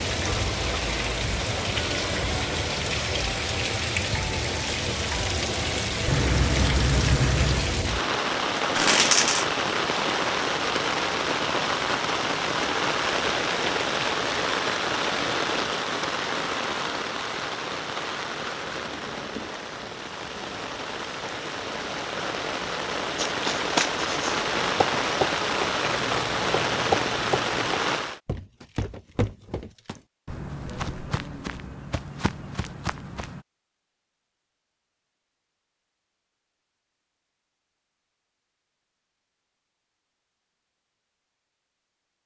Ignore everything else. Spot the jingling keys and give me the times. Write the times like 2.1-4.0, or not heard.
6.0-7.8, 26.0-27.7.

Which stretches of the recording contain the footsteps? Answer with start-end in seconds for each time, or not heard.
24.8-33.4.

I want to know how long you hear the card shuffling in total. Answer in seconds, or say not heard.
2 s.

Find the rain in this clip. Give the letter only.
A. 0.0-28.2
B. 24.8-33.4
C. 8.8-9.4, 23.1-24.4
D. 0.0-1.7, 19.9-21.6
A.